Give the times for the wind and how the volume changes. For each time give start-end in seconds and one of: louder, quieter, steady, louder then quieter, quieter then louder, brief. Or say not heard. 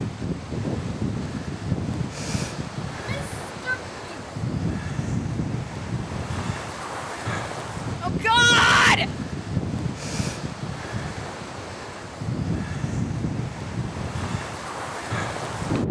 0.0-15.8 steady.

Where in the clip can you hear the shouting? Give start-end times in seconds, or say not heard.
2.9-4.3, 8.0-9.1.